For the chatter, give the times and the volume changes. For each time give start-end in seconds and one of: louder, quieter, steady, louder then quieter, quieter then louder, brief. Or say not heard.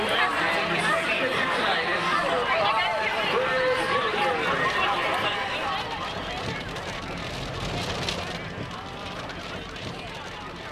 0.0-10.6 quieter.